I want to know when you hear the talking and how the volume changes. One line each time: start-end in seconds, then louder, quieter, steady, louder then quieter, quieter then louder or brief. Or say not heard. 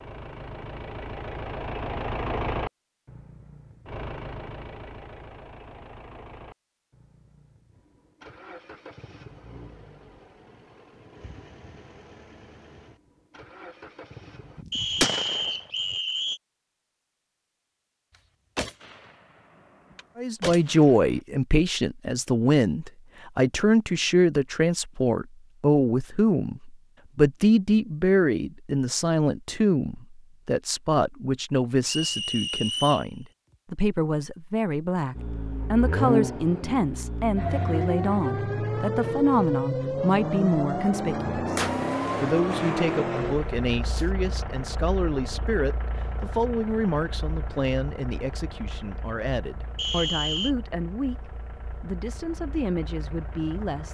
20.1-53.9 quieter.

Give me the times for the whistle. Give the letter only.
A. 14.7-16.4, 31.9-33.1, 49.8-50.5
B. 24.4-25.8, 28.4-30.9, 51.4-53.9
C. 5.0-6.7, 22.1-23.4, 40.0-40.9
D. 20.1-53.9
A.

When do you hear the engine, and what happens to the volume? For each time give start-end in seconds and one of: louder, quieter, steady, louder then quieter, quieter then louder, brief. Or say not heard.
0.0-14.7 quieter
35.1-53.9 quieter.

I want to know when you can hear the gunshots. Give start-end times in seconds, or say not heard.
14.6-15.9, 18.6-21.1, 41.5-44.1.